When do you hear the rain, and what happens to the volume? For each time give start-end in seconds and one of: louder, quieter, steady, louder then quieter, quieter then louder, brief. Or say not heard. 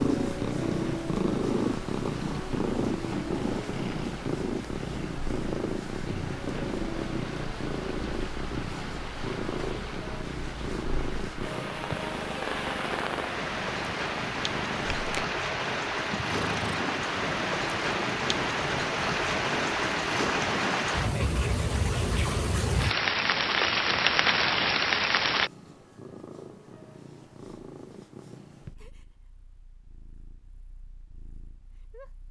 0.0-25.5 louder.